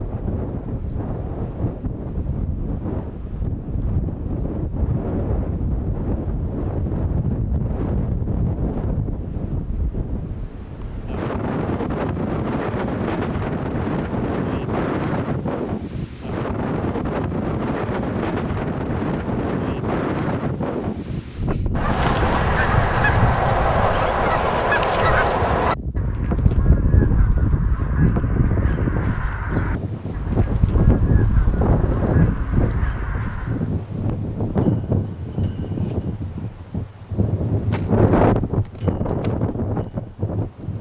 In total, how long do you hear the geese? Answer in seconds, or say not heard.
12 s.